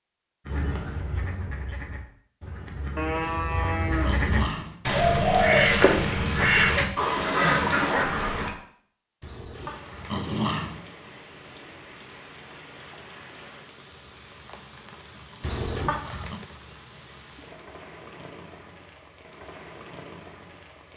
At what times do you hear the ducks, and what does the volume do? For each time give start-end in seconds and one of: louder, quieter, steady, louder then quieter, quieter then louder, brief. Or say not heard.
0.5-8.5 louder.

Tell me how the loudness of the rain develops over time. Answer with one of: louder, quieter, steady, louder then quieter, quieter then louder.
steady.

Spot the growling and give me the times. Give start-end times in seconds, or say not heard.
3.2-4.8, 9.2-10.8, 15.4-16.4.